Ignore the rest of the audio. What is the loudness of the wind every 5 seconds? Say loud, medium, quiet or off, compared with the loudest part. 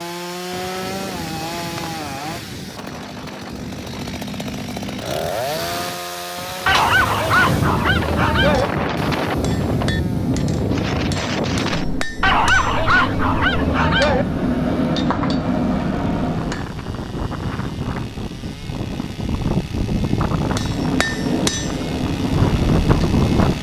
quiet, loud, loud, medium, loud.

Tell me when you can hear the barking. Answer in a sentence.
You can hear the barking from 6.7 to 8.7 s and from 12.2 to 14.2 s.